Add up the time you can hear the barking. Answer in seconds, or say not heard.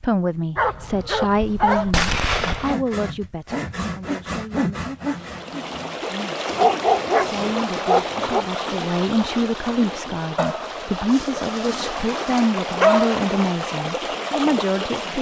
7 s.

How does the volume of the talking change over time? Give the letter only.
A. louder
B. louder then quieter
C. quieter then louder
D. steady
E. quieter
C.